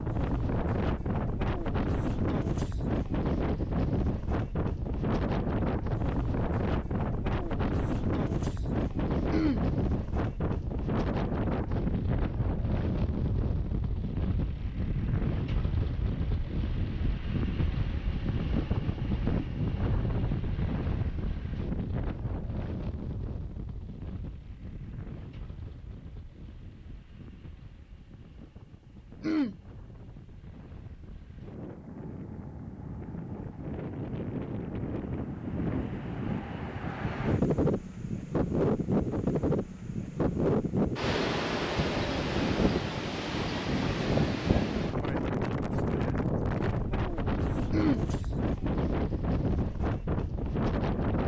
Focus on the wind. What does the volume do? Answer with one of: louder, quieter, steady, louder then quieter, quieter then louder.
quieter then louder.